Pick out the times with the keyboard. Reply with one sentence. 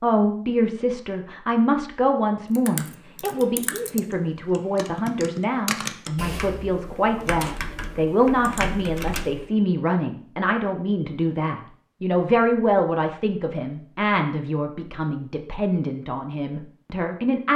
The keyboard can be heard from 2.5 to 9.5 s.